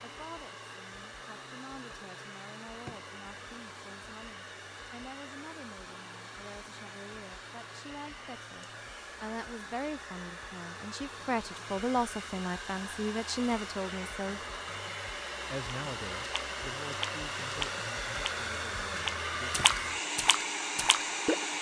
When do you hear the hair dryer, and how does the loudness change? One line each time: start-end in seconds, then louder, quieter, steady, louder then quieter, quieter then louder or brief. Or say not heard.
0.0-21.5 louder.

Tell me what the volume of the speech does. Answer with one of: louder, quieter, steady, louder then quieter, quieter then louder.
louder then quieter.